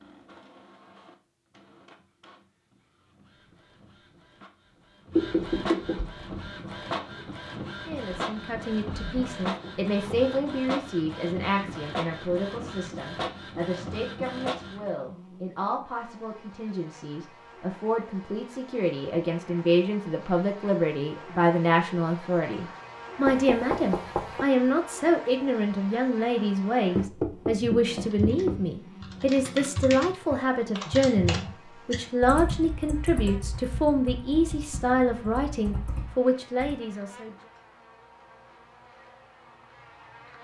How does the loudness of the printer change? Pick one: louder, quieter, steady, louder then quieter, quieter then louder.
louder.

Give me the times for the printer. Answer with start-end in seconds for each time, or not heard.
0.0-14.9.